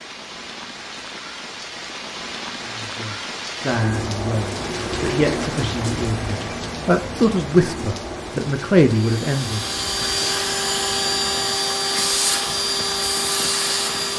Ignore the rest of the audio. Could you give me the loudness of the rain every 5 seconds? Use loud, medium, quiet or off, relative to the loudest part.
loud, loud, medium.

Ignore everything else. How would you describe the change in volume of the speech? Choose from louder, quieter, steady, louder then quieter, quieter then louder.
louder.